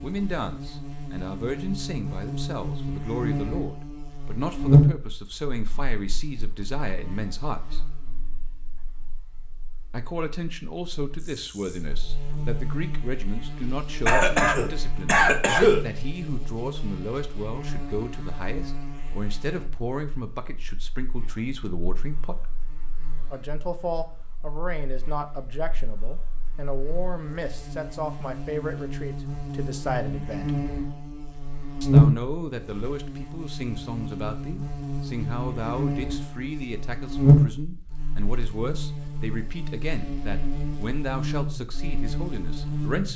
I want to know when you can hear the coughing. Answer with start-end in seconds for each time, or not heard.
14.1-15.8.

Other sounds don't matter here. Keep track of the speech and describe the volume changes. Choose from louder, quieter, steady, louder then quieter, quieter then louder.
steady.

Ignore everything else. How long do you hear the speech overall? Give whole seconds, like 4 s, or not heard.
39 s.